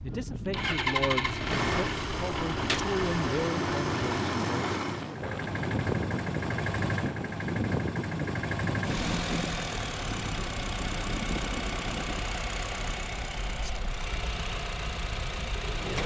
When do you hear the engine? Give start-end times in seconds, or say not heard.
0.0-16.0.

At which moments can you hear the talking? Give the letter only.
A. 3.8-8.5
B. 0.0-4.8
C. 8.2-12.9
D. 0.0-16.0
B.